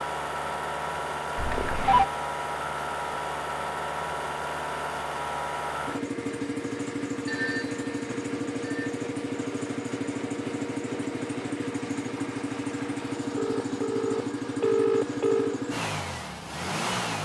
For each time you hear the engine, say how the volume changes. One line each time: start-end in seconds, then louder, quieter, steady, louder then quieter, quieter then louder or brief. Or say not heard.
0.0-17.2 steady.